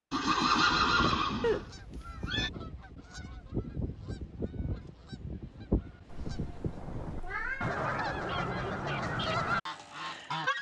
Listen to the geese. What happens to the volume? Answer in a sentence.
The loudness of the geese goes up.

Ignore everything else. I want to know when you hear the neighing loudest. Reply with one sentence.
The volume of the neighing peaks at 1 second.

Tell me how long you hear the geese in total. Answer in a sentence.
The geese can be heard for 10 seconds in total.